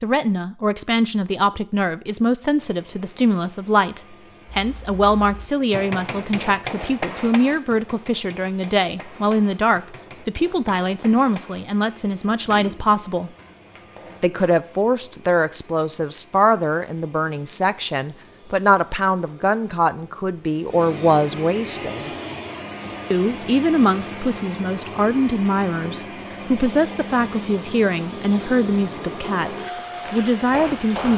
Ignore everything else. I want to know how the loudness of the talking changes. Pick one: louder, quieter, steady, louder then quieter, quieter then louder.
steady.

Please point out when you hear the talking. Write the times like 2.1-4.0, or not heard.
0.0-13.3, 14.2-22.1, 23.1-31.1.